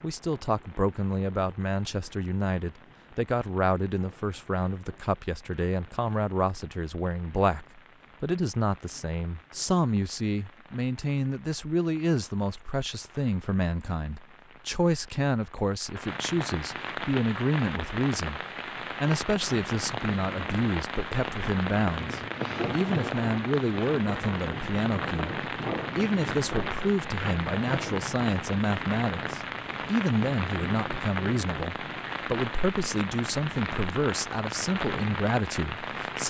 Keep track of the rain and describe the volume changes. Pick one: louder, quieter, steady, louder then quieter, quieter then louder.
louder.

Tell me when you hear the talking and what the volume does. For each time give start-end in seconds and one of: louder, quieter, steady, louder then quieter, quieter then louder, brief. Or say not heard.
0.0-36.2 steady.